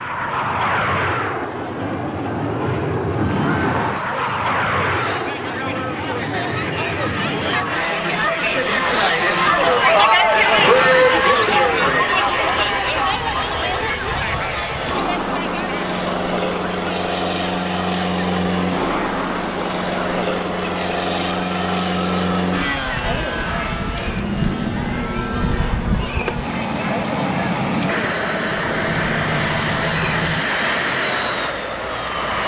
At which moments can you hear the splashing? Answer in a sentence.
The splashing can't be heard in this clip.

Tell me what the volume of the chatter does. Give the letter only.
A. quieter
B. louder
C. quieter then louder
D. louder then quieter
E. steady
D.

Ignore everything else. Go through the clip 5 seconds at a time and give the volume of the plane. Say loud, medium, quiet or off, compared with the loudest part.
loud, medium, medium, loud, loud, loud, loud.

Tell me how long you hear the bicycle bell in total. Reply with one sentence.
You can hear the bicycle bell for 2 seconds altogether.